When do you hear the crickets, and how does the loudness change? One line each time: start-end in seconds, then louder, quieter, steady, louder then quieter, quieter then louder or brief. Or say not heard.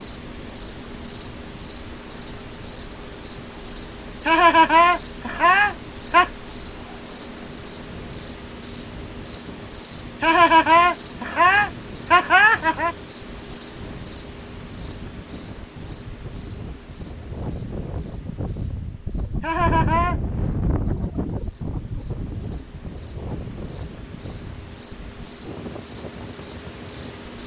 0.0-27.4 quieter then louder.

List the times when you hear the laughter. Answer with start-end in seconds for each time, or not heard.
4.2-6.3, 10.2-12.9, 19.4-20.1.